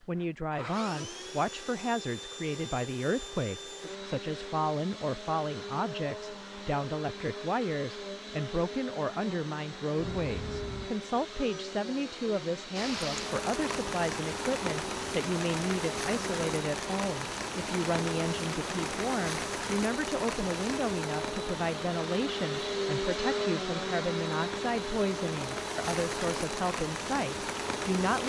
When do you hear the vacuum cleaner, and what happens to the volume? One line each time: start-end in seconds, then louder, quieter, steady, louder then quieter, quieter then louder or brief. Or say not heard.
0.0-28.1 louder.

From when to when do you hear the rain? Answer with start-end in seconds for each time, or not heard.
12.8-28.2.